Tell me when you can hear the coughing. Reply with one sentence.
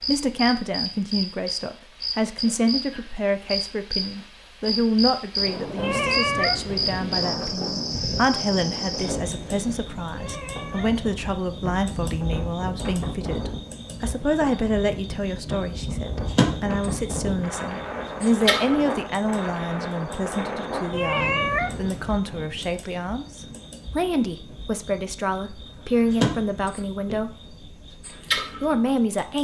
The coughing can't be heard in this clip.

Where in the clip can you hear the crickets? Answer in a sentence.
You can hear the crickets from 0.0 to 29.3 s.